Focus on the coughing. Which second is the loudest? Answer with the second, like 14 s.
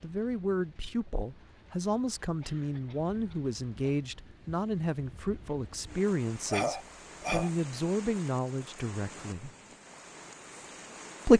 7 s.